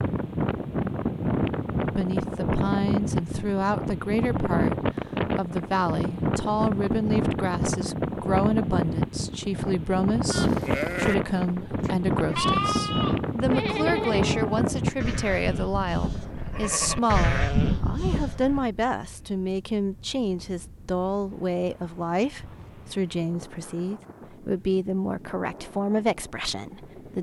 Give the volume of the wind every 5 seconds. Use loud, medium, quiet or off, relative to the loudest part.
loud, loud, loud, quiet, quiet, quiet.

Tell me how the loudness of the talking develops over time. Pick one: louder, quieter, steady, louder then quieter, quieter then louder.
steady.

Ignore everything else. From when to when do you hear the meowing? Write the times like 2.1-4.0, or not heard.
not heard.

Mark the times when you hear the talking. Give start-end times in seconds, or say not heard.
1.9-27.1.